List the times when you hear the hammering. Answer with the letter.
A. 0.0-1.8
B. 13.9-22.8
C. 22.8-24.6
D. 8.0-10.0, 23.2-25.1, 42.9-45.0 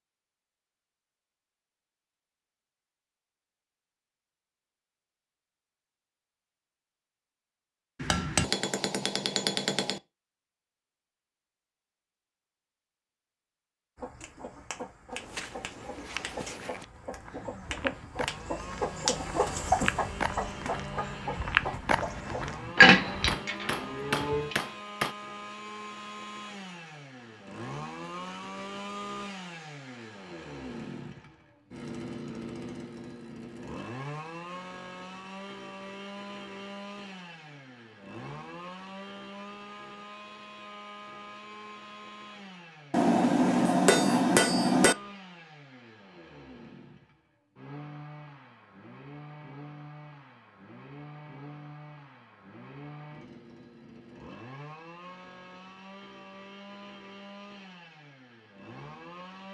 D.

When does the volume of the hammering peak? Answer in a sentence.
The volume of the hammering peaks at 44 seconds.